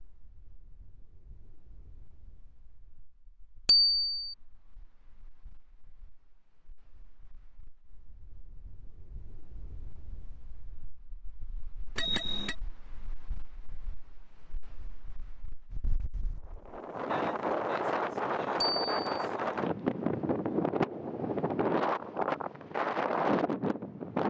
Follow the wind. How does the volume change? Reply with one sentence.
The volume of the wind goes up.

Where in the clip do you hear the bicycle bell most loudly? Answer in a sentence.
The loudest moment of the bicycle bell is at 4 seconds.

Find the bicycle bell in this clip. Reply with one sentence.
You can hear the bicycle bell from 3.6 to 4.3 s, from 11.9 to 12.6 s and from 18.6 to 19.2 s.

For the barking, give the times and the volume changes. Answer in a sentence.
The barking can't be heard in this clip.